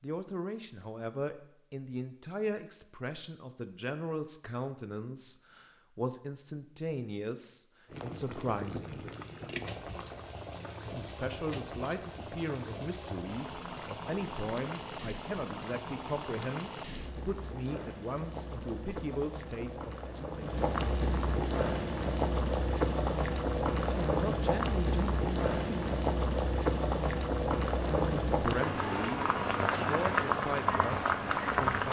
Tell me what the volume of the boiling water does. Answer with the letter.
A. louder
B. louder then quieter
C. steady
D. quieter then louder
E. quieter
A.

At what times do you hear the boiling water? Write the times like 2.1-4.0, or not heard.
7.8-31.8.